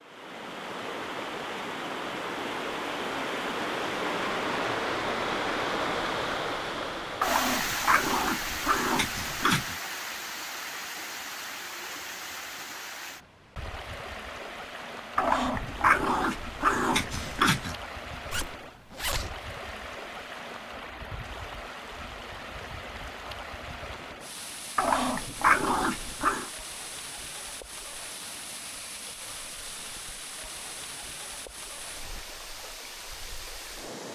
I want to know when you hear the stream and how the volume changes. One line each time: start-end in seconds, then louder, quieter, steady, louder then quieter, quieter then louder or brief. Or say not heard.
0.0-34.1 quieter.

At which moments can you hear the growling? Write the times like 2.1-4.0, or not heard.
7.2-9.8, 15.2-17.8, 24.8-26.5.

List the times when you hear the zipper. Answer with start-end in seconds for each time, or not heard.
18.3-19.3.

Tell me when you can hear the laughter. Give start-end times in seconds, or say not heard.
not heard.